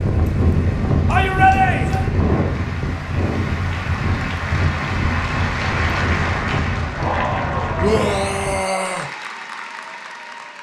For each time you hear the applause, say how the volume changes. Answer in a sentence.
The applause can be heard from 0.0 to 10.5 s, getting louder then quieter.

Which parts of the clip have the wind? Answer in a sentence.
You can hear the wind from 0.0 to 8.6 s.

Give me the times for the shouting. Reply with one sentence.
You can hear the shouting from 1.1 to 2.1 s and from 7.8 to 9.1 s.